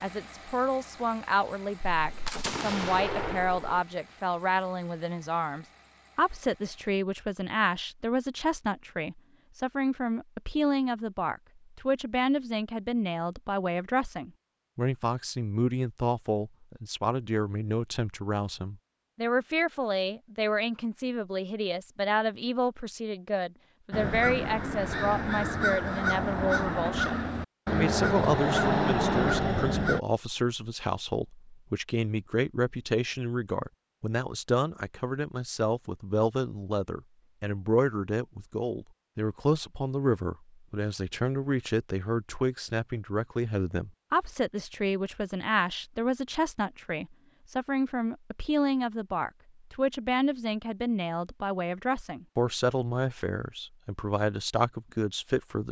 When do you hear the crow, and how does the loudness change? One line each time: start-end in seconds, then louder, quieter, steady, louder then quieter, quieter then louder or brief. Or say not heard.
23.9-30.0 louder.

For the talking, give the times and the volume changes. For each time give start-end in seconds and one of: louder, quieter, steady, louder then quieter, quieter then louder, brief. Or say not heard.
0.0-55.6 steady.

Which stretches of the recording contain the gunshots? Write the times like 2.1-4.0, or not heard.
1.8-3.8.